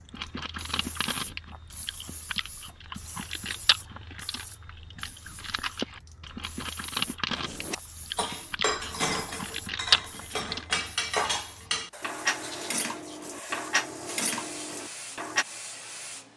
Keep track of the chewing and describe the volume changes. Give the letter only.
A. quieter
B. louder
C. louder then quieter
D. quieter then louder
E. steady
B.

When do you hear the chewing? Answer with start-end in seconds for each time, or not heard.
0.1-10.7.